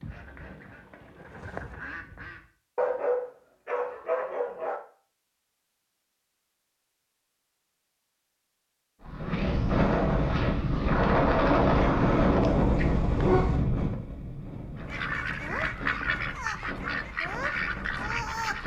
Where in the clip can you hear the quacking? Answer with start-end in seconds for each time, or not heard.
0.0-2.5, 14.8-18.6.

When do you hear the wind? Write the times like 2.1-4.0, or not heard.
9.0-18.6.